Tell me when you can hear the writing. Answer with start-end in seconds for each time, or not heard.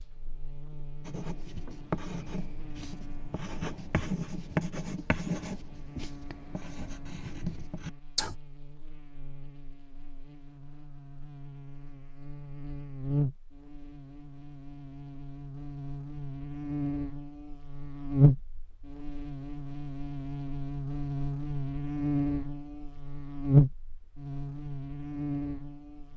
1.1-8.3.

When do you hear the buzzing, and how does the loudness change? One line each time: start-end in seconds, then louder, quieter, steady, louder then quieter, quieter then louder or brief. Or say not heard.
0.0-26.1 louder.